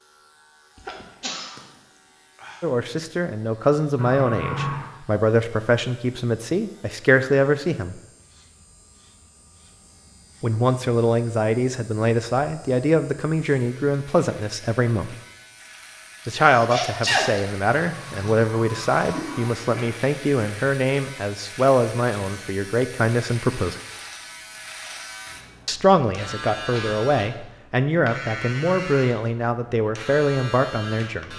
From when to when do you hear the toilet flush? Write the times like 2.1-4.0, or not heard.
4.0-4.9, 17.8-20.0.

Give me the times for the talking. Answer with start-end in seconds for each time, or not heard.
2.6-8.0, 10.4-15.2, 16.2-23.8, 25.6-31.3.